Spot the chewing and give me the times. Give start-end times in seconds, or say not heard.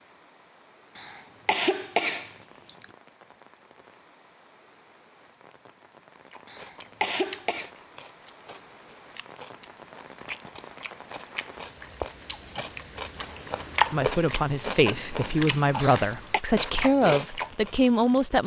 6.3-17.7.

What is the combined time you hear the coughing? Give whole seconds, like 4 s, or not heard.
4 s.